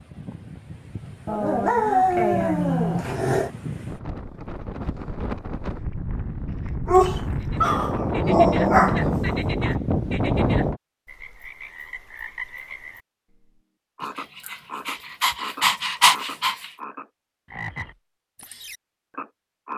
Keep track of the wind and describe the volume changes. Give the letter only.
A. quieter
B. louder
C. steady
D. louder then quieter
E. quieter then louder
B.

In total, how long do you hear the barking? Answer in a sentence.
You can hear the barking for 7 seconds altogether.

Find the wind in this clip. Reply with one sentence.
The wind can be heard from 0.0 to 10.8 s.